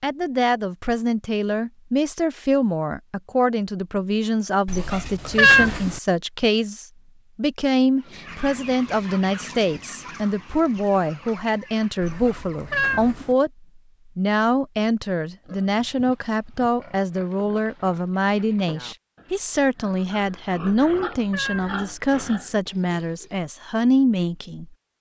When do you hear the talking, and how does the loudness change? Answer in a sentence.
The talking can be heard from 0.0 to 24.7 s, at a steady volume.